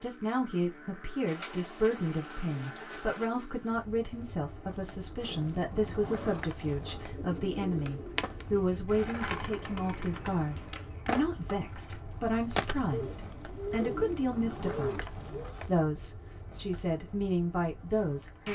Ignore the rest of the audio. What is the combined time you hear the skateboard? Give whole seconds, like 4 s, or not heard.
14 s.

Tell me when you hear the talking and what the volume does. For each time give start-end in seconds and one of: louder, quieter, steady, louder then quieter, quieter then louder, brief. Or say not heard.
0.0-18.4 steady.